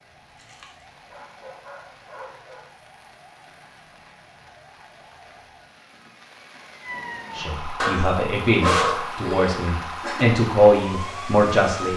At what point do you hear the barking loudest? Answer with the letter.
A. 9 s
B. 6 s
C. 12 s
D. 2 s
A.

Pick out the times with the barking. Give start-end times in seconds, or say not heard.
0.5-2.6, 7.8-10.2.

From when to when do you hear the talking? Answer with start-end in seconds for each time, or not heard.
7.3-11.9.